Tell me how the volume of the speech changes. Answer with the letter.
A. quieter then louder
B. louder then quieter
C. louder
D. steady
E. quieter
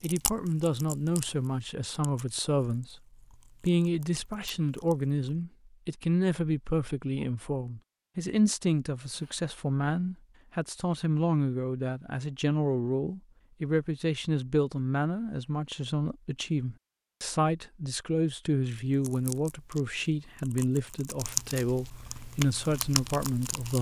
D.